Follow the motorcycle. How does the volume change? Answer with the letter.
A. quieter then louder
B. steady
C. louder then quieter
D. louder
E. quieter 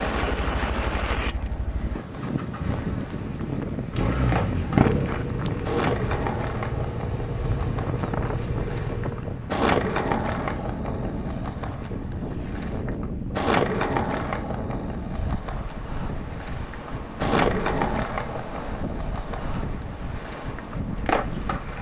C.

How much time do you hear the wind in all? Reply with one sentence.
The wind can be heard for 22 seconds in total.